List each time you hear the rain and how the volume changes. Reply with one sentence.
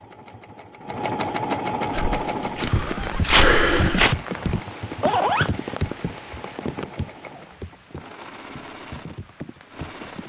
The rain can be heard from 2.1 to 10.2 s, getting quieter.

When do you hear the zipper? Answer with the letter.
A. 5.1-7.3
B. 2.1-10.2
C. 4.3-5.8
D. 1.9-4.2
C.